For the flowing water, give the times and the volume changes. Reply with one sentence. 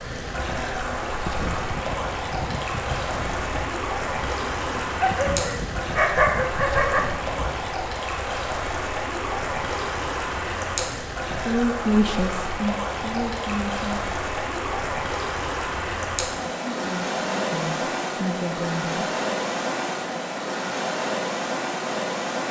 The flowing water can be heard from 0.0 to 22.4 s, at a steady volume.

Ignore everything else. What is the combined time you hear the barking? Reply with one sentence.
You can hear the barking for 2 seconds altogether.